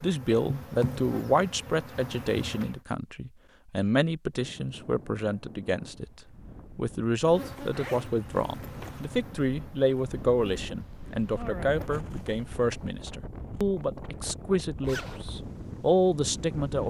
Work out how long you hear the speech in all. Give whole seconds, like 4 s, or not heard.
16 s.